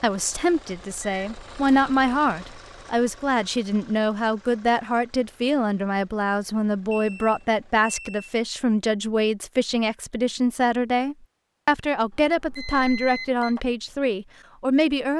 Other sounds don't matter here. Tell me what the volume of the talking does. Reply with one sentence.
The volume of the talking stays about the same.